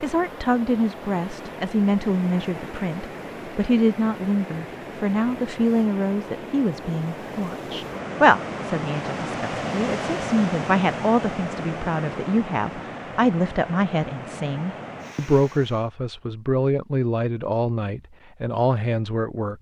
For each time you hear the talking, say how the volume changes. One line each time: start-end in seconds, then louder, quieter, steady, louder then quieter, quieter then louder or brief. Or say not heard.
0.0-19.5 steady.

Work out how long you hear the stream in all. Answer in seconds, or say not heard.
16 s.